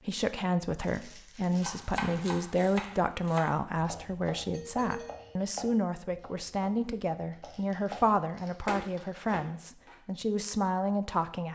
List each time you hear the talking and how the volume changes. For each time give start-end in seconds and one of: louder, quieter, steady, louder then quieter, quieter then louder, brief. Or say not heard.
0.1-11.4 steady.